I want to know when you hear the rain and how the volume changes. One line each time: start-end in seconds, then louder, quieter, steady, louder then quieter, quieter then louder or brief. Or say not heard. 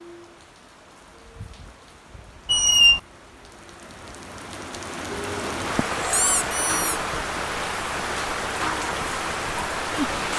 0.0-10.3 louder.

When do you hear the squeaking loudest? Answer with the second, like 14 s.
3 s.